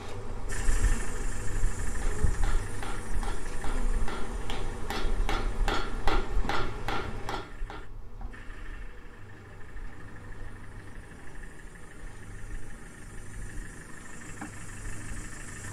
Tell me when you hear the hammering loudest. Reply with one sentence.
The loudest moment of the hammering is at 6 seconds.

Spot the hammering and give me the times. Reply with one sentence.
You can hear the hammering from 1.8 to 7.8 s.